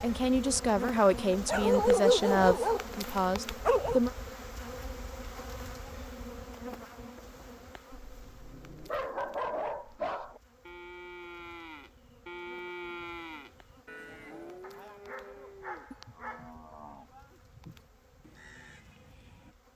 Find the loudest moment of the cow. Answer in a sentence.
The volume of the cow peaks at 13 seconds.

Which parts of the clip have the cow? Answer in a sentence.
You can hear the cow from 9.9 to 19.6 s.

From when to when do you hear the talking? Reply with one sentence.
You can hear the talking from 0.0 to 4.1 s.